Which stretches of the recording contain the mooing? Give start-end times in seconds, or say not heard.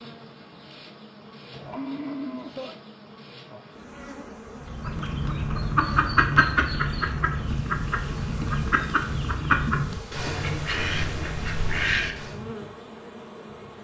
1.5-2.8.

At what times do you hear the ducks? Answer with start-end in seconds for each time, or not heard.
4.6-12.4.